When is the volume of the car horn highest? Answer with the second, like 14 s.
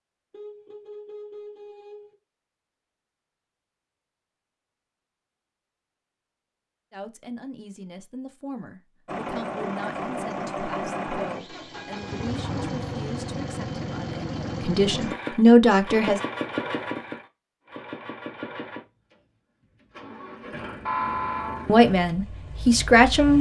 21 s.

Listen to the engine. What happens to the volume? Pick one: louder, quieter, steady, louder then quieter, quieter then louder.
quieter.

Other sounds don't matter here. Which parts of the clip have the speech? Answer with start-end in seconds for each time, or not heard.
6.9-16.2, 21.6-23.3.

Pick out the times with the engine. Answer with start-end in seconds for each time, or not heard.
9.1-23.3.